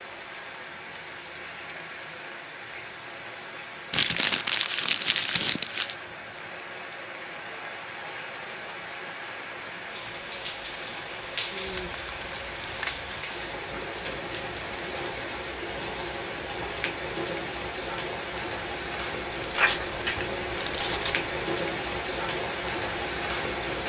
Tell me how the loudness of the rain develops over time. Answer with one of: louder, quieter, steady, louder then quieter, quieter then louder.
louder.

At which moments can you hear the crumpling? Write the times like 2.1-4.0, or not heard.
3.9-6.0, 11.7-13.2, 19.3-21.3.